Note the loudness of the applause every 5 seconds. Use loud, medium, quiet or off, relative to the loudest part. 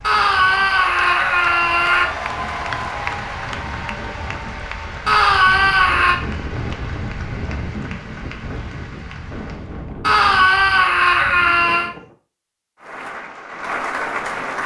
loud, medium, loud.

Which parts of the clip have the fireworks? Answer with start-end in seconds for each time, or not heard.
not heard.